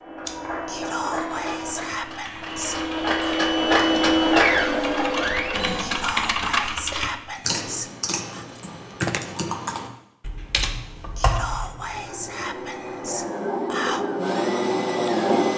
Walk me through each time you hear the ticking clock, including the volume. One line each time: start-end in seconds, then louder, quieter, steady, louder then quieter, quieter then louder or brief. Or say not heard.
not heard.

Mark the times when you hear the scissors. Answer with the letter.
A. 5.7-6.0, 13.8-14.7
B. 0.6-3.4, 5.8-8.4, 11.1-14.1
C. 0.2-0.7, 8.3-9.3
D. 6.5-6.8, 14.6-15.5
C.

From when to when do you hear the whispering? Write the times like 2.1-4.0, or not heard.
0.6-3.4, 5.8-8.4, 11.1-14.1.